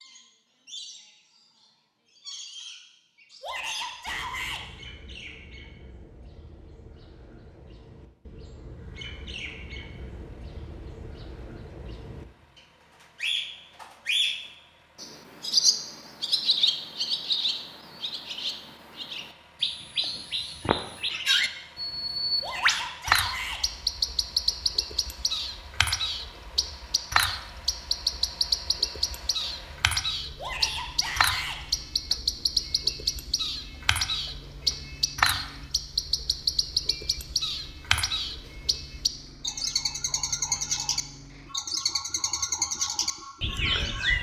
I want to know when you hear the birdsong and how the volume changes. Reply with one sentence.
You can hear the birdsong from 0.0 to 44.1 s, getting louder.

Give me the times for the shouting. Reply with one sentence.
The shouting can be heard from 3.4 to 4.7 s, from 22.4 to 23.6 s and from 30.4 to 31.6 s.